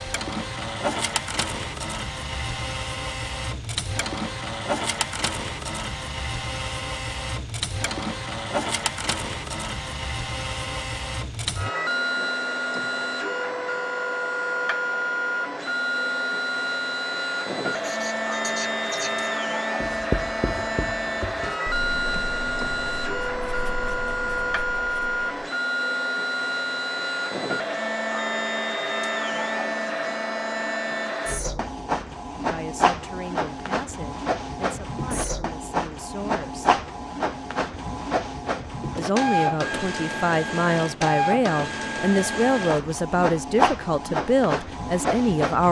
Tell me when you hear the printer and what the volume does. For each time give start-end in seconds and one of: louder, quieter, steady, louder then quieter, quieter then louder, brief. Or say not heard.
0.0-45.6 steady.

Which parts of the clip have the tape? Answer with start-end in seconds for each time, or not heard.
not heard.